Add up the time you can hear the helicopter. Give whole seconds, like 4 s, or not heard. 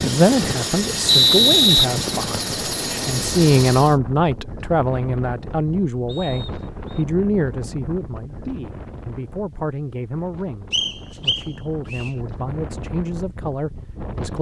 4 s.